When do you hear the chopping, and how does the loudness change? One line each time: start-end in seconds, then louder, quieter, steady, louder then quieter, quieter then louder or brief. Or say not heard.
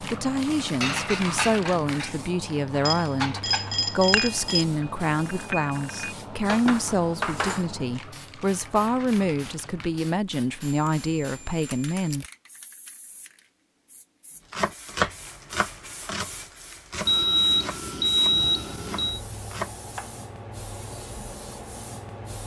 14.5-20.1 quieter then louder.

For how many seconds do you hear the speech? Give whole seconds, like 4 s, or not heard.
12 s.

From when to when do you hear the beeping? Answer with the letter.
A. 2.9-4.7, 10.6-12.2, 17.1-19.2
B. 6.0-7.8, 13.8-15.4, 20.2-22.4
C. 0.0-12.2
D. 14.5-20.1
A.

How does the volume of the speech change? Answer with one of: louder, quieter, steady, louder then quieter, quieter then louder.
steady.